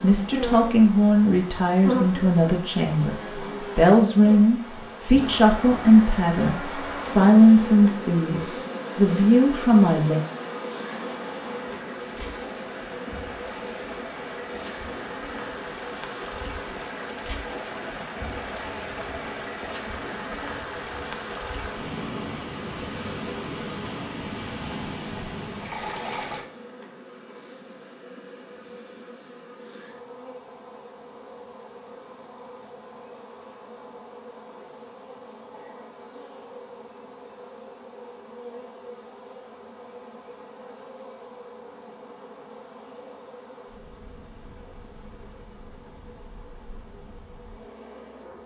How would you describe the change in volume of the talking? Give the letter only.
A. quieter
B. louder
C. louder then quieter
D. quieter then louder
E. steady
E.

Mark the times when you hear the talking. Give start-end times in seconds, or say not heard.
0.0-3.1, 3.8-10.2.